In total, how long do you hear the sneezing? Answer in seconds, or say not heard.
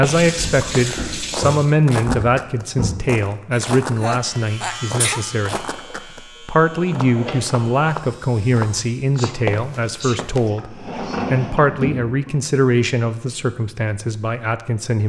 3 s.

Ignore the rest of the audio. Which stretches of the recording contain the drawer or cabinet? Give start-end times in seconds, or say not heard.
0.3-3.0, 5.7-7.7, 10.4-12.3.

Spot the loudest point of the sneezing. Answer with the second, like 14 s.
5 s.